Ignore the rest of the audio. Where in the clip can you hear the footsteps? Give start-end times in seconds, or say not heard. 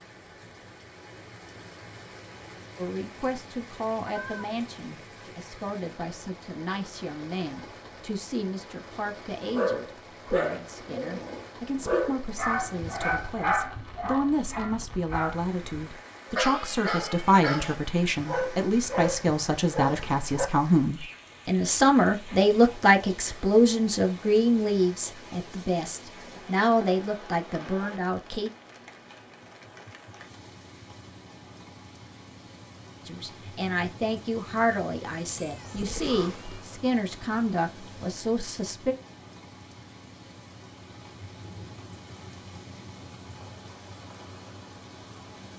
not heard.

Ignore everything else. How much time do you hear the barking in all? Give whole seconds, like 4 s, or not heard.
11 s.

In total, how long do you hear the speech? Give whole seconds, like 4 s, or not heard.
32 s.